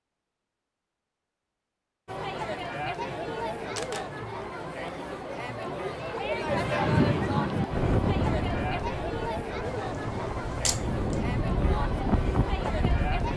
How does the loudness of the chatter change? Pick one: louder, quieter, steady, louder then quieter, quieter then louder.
steady.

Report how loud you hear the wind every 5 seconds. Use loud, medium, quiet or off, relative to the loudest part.
off, loud, loud.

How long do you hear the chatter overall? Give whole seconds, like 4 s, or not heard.
11 s.